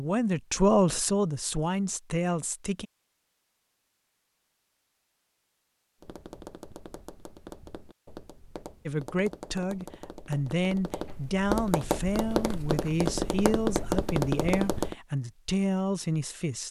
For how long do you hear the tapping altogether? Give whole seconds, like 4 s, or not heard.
9 s.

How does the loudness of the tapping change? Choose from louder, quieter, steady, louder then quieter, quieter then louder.
louder.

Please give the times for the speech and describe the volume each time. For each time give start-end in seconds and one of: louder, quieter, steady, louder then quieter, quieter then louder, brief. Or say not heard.
0.0-2.9 brief
8.8-16.6 steady.